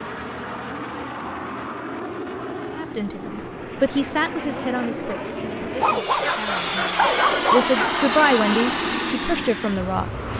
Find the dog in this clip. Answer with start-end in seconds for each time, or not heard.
5.8-8.3.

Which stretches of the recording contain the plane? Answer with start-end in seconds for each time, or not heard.
0.0-10.3.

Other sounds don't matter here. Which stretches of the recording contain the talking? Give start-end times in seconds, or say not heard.
2.8-10.1.